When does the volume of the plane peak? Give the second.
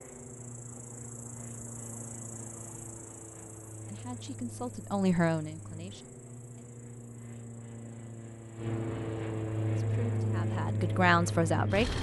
10 s.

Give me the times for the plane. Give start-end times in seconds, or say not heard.
0.0-11.9.